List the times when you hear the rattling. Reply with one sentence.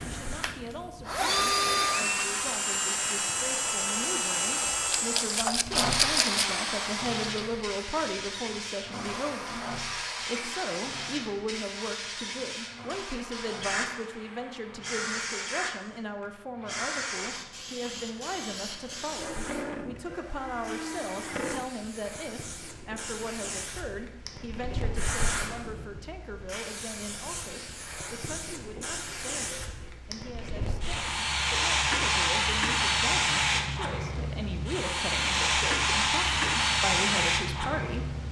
The rattling can be heard from 5.0 to 6.5 s.